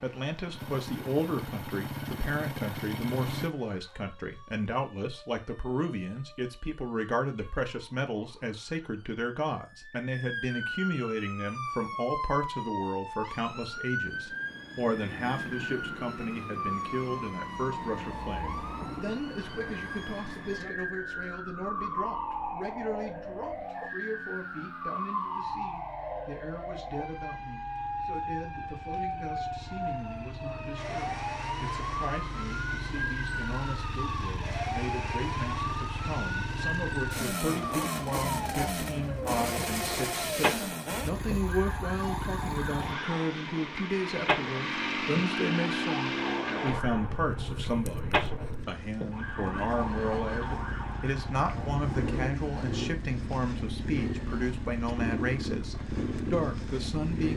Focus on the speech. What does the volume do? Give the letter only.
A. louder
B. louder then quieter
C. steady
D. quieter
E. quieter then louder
E.